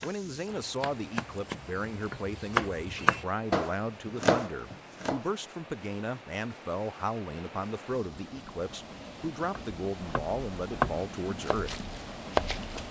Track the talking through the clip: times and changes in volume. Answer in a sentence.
The talking can be heard from 0.0 to 11.8 s, at a steady volume.